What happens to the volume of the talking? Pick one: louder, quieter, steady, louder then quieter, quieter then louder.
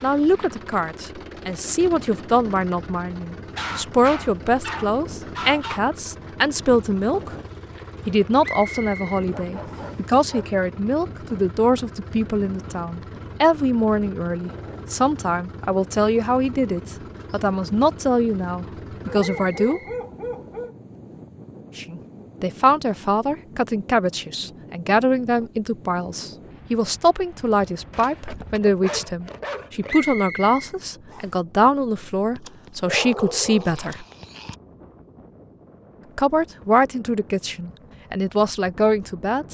steady.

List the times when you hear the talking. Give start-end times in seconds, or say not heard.
0.0-7.3, 8.1-19.8, 21.8-34.0, 36.1-39.5.